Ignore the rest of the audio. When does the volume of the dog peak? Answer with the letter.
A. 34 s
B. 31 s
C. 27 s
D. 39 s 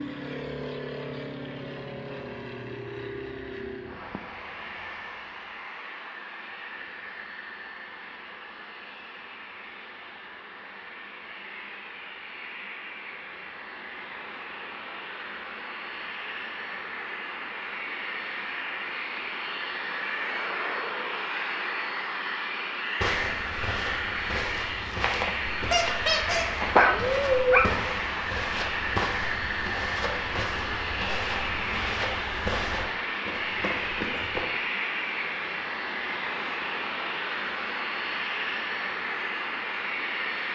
C.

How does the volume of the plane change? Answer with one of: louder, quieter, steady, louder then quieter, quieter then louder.
louder.